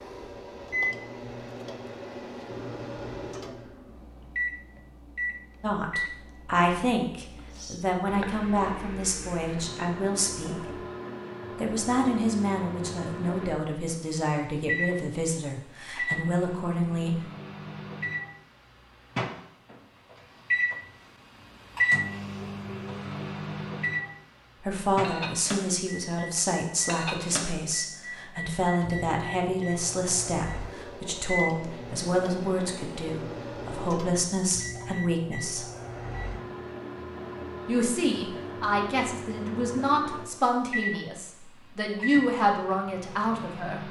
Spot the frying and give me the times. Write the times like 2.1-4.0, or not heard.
not heard.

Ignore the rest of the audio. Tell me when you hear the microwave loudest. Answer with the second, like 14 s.
22 s.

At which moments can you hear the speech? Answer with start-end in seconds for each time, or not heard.
5.6-10.8, 11.6-17.2, 24.6-35.6, 37.6-43.8.